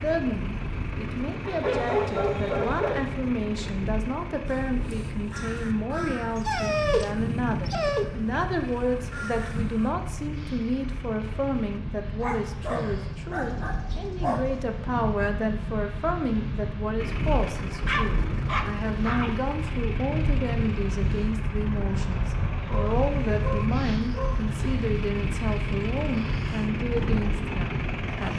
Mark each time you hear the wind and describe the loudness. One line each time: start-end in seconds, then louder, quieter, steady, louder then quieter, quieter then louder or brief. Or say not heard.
0.0-28.3 louder.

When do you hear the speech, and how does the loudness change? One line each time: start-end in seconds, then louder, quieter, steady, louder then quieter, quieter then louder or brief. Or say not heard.
0.0-28.3 steady.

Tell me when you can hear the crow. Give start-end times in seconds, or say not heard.
4.5-9.9.